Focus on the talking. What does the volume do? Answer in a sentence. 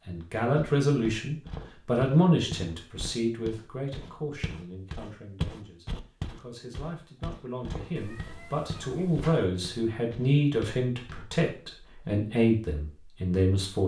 The loudness of the talking goes down, then up.